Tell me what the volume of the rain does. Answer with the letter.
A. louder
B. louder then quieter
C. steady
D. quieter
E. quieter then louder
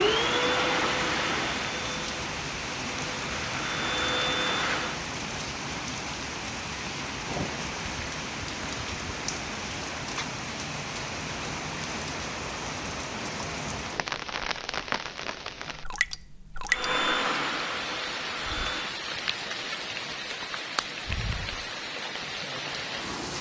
C.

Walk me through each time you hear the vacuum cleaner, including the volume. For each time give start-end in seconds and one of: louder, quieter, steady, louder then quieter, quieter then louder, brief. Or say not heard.
0.0-5.0 quieter then louder
16.7-18.9 brief.